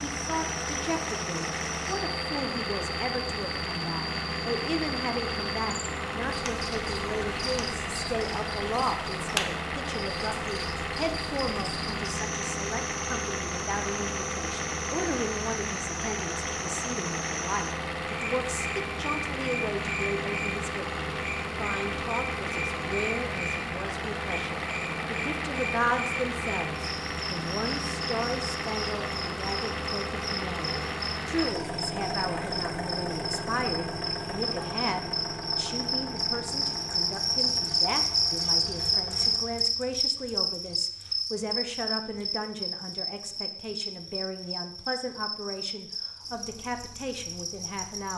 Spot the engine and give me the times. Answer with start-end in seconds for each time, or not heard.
0.0-39.4.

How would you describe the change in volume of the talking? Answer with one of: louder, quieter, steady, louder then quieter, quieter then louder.
steady.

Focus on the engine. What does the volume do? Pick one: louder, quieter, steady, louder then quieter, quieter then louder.
steady.